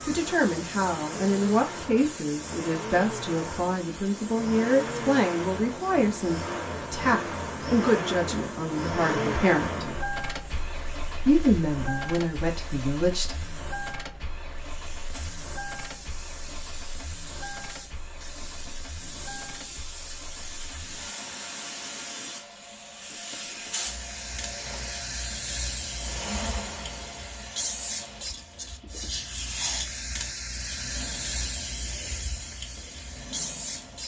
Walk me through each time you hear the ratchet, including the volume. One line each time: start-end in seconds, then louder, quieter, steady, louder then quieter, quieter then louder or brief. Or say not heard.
not heard.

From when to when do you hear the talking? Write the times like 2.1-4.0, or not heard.
0.0-9.9, 11.2-13.3.